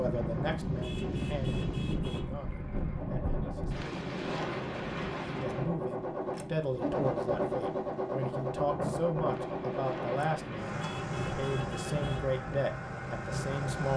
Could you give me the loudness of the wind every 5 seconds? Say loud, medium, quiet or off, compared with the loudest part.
loud, loud, medium.